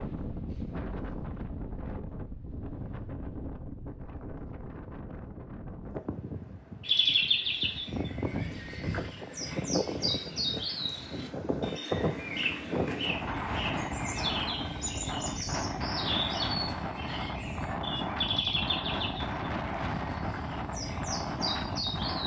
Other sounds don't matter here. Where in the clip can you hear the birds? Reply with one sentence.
The birds can be heard from 6.8 to 22.2 s.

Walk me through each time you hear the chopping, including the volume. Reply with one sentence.
You can't hear the chopping here.